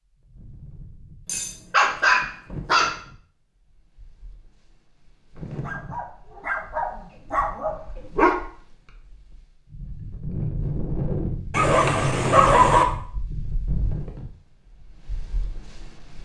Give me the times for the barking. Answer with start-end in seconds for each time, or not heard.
1.2-3.0, 5.7-8.3, 11.5-12.8.